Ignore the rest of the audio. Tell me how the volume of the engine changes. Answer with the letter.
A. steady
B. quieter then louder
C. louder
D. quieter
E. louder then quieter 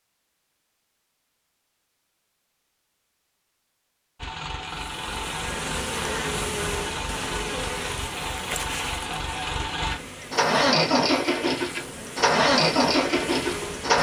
C.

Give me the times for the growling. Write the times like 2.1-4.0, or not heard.
not heard.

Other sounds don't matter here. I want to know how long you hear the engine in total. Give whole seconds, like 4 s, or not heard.
10 s.